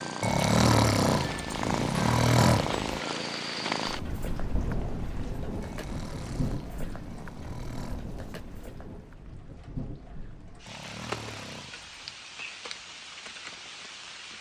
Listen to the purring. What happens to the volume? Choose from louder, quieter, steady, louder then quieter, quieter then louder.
quieter.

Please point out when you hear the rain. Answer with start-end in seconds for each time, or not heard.
0.0-14.3.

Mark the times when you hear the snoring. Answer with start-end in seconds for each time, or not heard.
0.2-2.9, 5.6-8.0, 10.7-12.2.